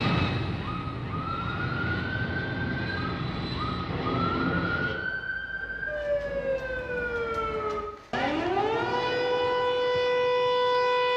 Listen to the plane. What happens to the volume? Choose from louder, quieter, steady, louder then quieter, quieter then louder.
steady.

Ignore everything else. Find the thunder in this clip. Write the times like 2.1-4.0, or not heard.
3.9-7.2.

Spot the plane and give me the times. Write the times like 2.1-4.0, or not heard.
0.0-5.0.